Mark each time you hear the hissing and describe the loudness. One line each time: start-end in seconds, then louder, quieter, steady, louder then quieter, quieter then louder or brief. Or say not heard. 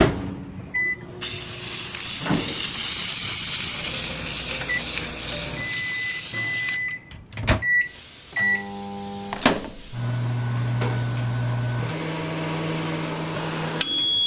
0.2-14.2 quieter.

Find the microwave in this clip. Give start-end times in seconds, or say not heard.
0.0-14.2.